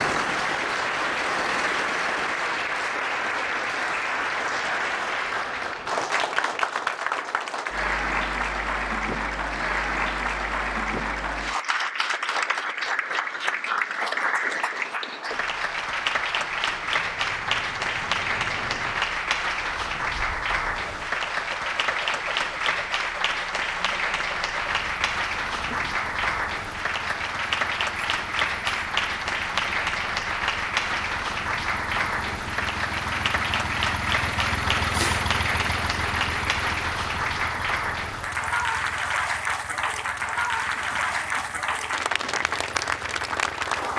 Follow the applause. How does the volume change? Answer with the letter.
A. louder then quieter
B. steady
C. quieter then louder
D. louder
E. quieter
B.